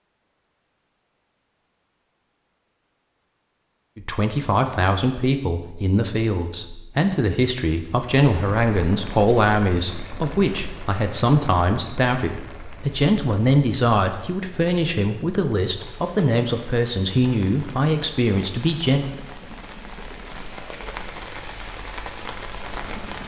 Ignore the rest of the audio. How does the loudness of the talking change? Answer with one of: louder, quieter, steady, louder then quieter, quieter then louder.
steady.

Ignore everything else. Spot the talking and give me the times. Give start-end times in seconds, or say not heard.
4.0-19.1.